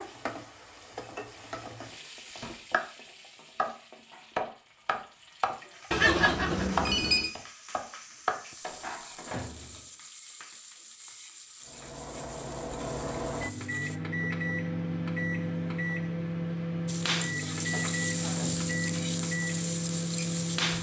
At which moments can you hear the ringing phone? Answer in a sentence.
The ringing phone can be heard from 5.9 to 7.3 s.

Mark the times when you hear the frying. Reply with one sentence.
You can hear the frying from 0.0 to 14.0 s and from 16.9 to 20.7 s.